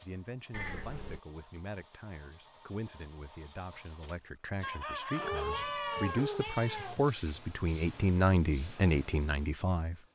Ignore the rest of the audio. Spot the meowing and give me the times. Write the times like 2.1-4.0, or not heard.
0.5-1.2, 5.2-7.1.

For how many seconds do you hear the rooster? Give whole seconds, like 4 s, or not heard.
2 s.